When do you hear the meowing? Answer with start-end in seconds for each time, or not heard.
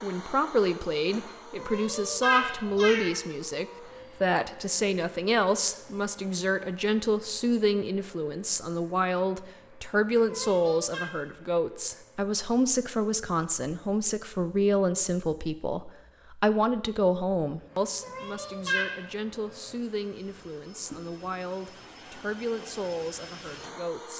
1.6-3.2, 10.2-11.1, 18.0-18.9.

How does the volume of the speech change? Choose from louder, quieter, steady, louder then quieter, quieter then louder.
quieter.